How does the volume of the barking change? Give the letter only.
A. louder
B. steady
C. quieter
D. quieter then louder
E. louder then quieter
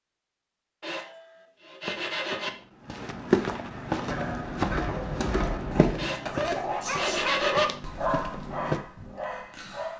E.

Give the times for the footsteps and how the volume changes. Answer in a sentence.
The footsteps can be heard from 1.8 to 8.8 s, getting quieter.